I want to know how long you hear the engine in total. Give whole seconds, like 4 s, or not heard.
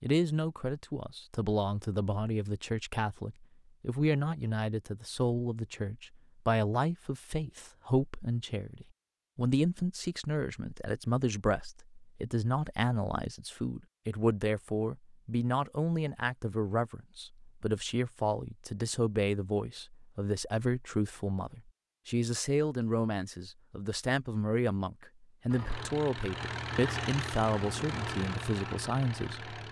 4 s.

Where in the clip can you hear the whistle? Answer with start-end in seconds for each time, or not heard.
not heard.